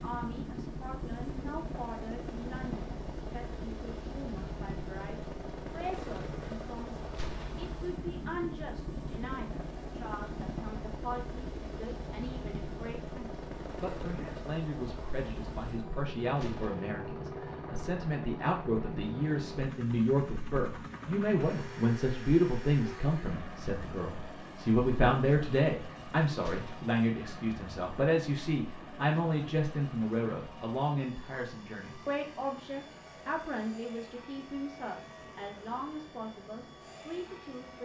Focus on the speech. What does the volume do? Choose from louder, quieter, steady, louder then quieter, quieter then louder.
louder then quieter.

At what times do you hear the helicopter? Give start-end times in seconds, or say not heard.
0.0-37.8.